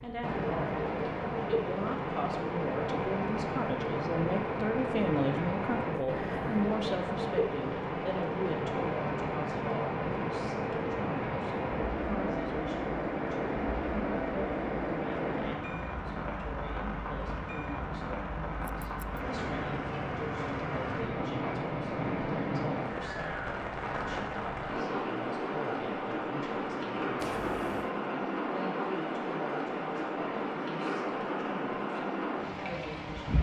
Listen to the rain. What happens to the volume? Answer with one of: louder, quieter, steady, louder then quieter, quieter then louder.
steady.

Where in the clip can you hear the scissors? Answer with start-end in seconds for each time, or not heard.
6.0-6.5, 18.6-19.2, 27.1-27.9.